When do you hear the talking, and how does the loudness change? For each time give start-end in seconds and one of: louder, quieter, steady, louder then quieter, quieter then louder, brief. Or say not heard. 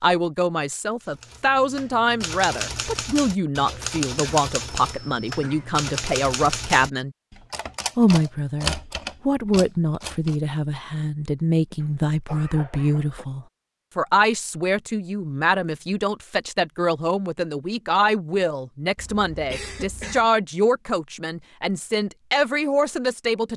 0.0-7.2 steady
8.0-23.5 steady.